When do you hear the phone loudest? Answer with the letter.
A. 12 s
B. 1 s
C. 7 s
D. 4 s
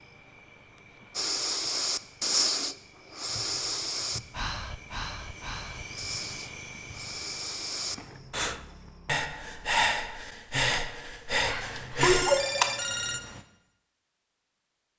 A.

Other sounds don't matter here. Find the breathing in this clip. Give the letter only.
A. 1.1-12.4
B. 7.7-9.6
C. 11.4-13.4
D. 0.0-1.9
A.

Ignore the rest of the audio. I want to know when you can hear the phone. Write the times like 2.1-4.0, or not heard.
11.4-13.4.